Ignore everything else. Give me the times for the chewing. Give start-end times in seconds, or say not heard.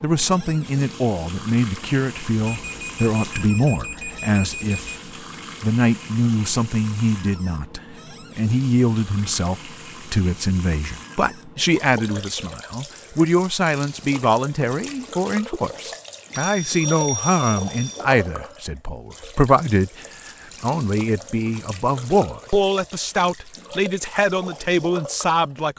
not heard.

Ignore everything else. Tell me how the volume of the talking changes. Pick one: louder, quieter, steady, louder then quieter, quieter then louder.
steady.